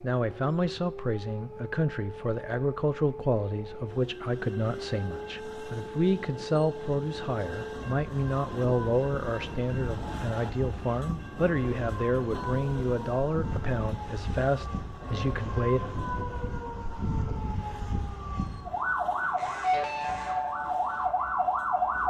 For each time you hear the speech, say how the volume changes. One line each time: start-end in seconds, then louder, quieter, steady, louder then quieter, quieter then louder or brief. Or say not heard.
0.0-15.8 steady.